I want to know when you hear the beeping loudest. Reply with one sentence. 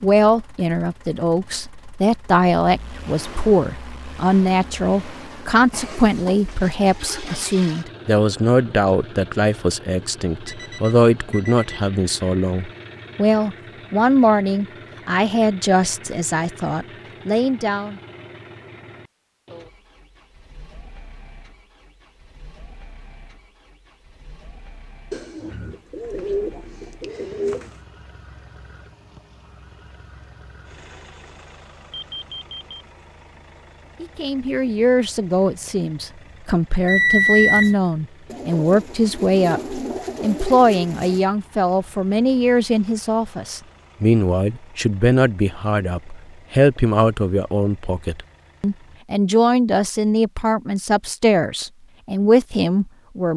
The loudest moment of the beeping is at 37 seconds.